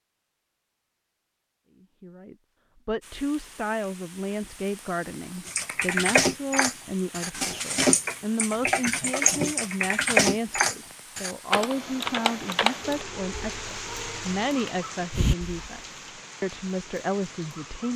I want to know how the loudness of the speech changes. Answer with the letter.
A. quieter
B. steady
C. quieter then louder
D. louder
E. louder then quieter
B.